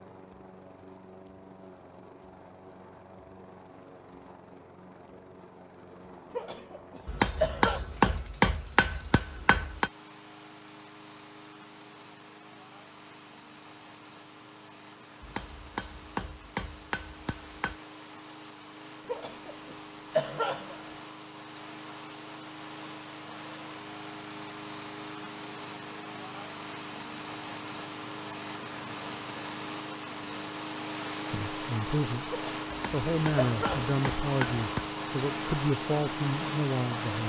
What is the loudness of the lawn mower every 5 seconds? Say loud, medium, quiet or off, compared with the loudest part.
quiet, quiet, quiet, quiet, medium, medium, loud, loud.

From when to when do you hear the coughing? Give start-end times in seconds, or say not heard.
6.3-7.8, 19.1-20.9, 32.3-33.9.